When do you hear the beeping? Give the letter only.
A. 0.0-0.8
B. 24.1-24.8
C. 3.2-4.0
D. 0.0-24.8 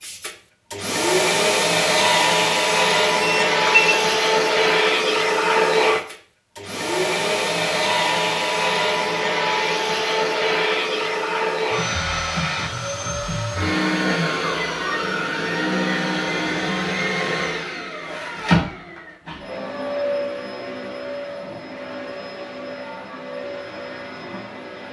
C.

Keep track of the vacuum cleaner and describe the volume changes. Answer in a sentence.
The volume of the vacuum cleaner goes down.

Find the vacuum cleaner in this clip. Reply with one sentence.
The vacuum cleaner can be heard from 0.0 to 24.8 s.